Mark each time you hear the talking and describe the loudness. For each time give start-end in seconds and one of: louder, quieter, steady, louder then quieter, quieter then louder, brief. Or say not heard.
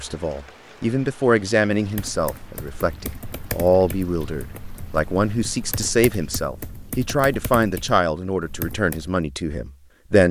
0.0-10.2 steady.